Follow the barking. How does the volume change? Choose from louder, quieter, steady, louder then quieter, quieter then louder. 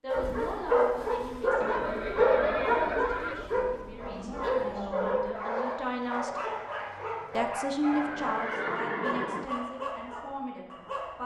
quieter.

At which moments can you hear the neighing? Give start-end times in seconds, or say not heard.
1.6-3.5, 7.9-9.4.